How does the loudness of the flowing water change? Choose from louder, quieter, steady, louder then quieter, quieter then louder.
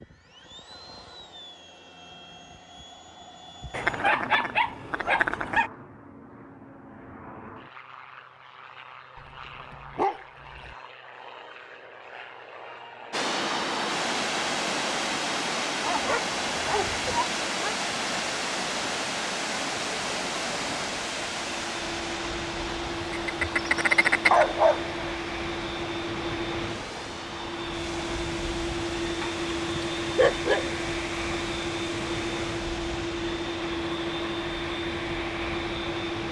quieter.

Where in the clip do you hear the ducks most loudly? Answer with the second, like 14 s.
24 s.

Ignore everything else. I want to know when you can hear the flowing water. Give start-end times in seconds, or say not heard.
13.1-36.2.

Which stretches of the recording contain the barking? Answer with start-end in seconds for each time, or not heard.
3.7-5.7, 9.2-10.8, 15.8-17.8, 23.0-24.9, 29.2-30.8.